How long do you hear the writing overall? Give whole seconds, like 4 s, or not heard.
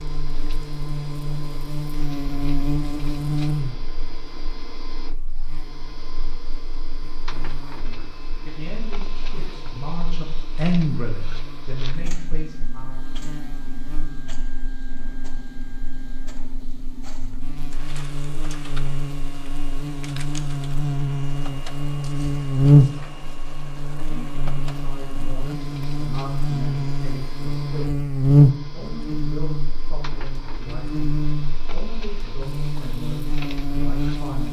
not heard.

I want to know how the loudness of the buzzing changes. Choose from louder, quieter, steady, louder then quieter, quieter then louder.
quieter then louder.